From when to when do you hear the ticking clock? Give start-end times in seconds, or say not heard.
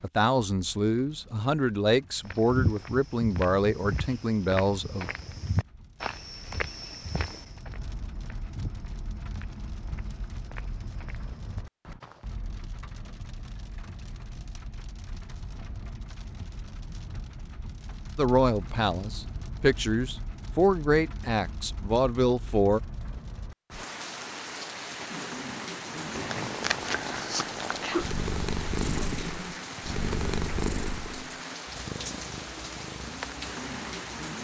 not heard.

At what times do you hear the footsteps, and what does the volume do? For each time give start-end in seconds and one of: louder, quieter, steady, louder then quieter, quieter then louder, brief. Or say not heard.
2.2-12.3 quieter.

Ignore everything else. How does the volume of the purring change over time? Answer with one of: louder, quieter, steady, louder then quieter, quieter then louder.
quieter.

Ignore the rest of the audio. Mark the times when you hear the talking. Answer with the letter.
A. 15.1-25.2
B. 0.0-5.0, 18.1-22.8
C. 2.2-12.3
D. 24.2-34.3
B.